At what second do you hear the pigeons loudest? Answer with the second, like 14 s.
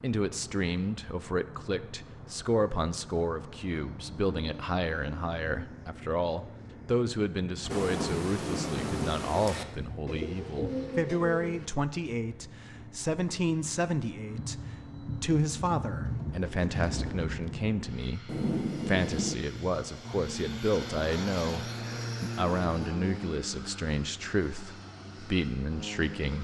11 s.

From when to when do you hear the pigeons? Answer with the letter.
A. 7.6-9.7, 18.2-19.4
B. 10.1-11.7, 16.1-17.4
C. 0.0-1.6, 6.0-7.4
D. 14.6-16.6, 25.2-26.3
B.